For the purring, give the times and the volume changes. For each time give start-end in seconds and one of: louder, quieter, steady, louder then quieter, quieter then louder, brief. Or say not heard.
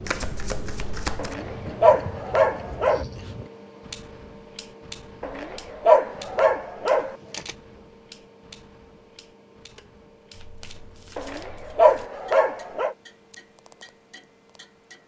not heard.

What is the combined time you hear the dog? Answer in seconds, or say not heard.
6 s.